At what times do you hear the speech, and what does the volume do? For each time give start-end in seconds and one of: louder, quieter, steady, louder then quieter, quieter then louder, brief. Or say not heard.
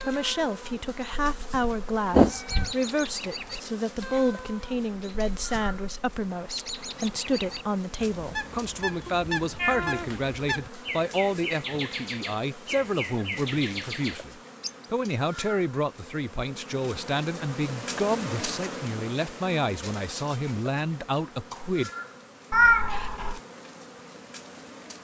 0.0-21.9 steady.